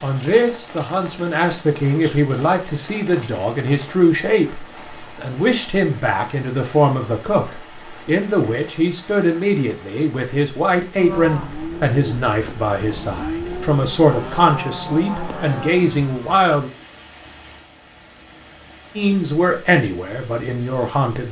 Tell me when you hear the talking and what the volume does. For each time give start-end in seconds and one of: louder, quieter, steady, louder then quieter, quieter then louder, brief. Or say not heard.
0.0-16.7 steady
18.9-21.2 brief.